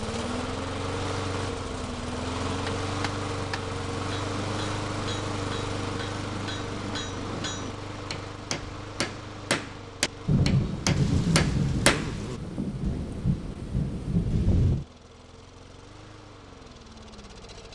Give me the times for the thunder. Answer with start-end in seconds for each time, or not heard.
10.2-14.8.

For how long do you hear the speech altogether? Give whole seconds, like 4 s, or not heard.
not heard.